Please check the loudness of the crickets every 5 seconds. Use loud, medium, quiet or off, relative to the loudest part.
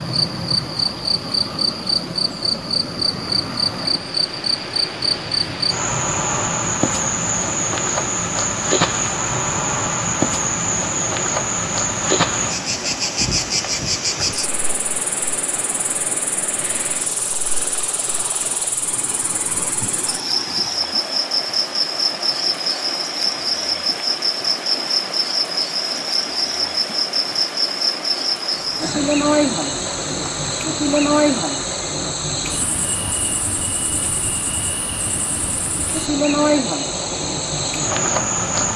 loud, loud, loud, medium, loud, loud, loud, loud.